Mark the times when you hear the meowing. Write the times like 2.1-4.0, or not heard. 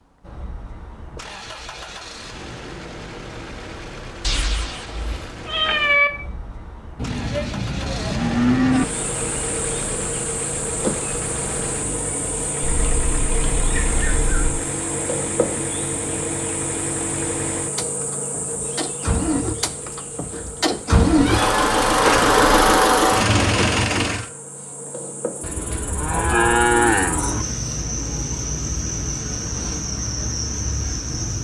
4.2-6.1, 12.6-14.4, 20.9-22.6.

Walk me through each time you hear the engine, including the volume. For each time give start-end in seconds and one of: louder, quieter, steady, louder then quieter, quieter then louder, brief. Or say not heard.
0.0-24.3 louder.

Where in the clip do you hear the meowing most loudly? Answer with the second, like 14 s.
6 s.